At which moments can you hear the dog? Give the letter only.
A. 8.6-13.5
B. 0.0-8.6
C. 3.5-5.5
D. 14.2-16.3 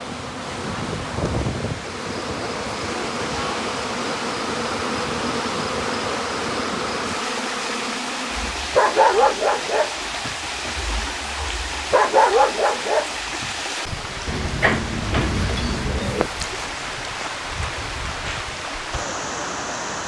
A.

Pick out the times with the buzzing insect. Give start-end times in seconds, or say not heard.
0.0-8.6.